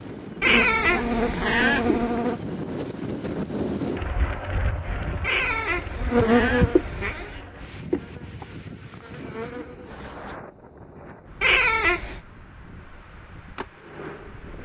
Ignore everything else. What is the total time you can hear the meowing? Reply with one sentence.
The meowing can be heard for 5 seconds in total.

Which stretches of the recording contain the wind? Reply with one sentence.
The wind can be heard from 0.0 to 14.6 s.